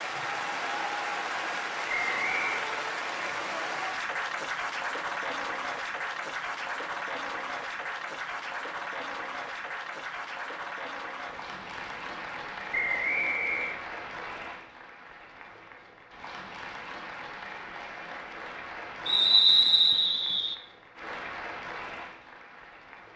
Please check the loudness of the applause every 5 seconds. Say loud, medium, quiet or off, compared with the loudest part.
loud, loud, medium, medium, medium.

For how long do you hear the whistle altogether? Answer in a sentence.
You can hear the whistle for 3 seconds altogether.